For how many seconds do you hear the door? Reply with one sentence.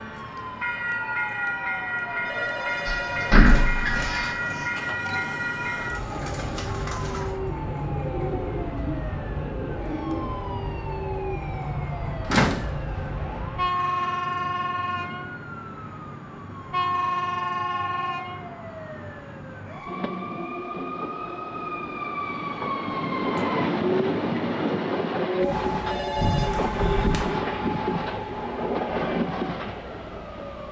The door can be heard for 4 seconds in total.